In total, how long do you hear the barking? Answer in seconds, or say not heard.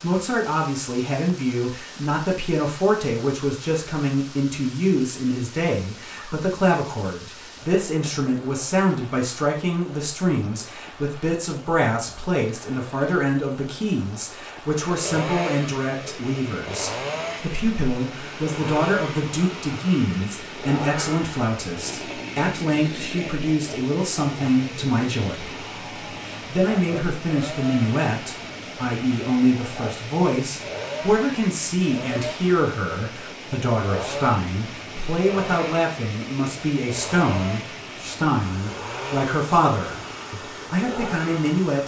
not heard.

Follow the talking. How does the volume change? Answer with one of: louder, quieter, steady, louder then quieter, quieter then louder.
steady.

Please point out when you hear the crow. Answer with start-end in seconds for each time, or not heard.
not heard.